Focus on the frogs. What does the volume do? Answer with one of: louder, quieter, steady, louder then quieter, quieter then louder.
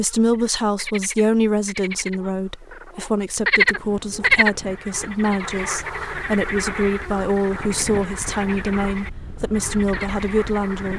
louder then quieter.